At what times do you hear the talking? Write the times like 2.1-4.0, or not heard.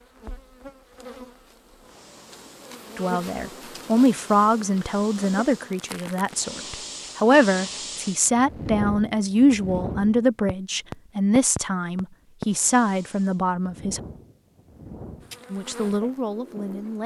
3.0-14.0, 15.5-17.0.